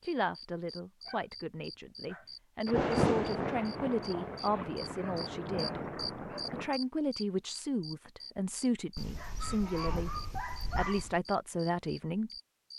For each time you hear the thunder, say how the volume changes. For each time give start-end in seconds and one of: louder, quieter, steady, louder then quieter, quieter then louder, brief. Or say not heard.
2.6-6.8 quieter.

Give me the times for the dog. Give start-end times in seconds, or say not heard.
1.1-2.4, 4.4-6.5, 8.9-11.2.